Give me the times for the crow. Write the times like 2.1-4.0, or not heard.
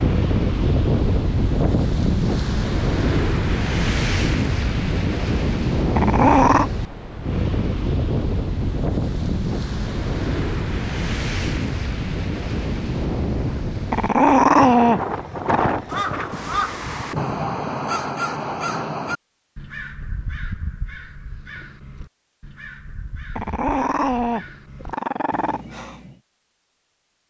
15.8-26.2.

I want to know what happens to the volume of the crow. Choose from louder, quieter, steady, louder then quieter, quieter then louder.
quieter.